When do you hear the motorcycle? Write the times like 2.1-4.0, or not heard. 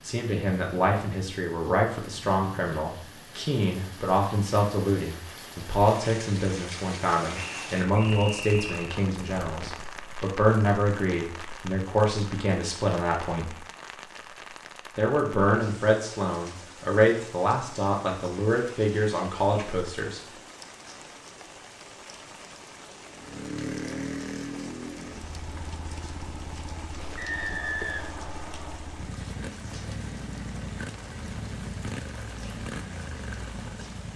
23.1-34.1.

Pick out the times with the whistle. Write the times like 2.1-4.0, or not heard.
7.3-8.9, 27.1-28.9.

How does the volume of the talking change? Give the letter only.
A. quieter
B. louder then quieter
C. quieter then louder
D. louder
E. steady
E.